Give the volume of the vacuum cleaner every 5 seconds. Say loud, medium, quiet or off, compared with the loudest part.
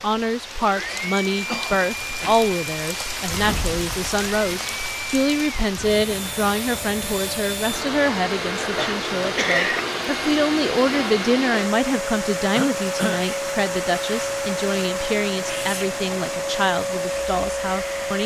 medium, loud, loud, loud.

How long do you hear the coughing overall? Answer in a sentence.
The coughing can be heard for 3 seconds in total.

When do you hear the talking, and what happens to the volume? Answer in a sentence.
You can hear the talking from 0.0 to 18.2 s, at a steady volume.